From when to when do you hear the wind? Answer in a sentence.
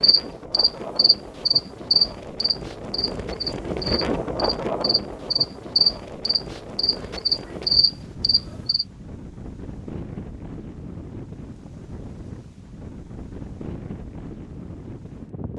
You can hear the wind from 0.0 to 15.5 s.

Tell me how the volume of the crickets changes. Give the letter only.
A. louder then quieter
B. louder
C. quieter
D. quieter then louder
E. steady
D.